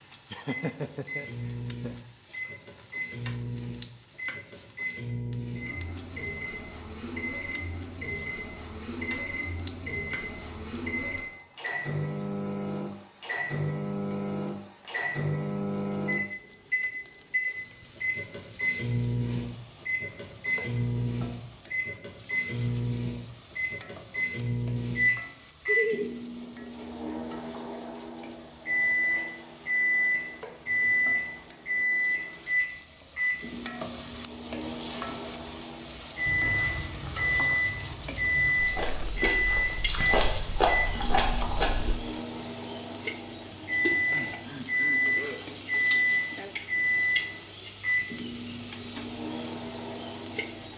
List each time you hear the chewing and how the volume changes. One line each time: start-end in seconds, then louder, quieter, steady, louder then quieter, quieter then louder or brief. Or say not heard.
36.2-42.0 louder.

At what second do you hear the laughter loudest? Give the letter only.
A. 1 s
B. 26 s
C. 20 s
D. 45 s
B.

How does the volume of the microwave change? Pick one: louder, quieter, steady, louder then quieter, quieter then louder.
louder.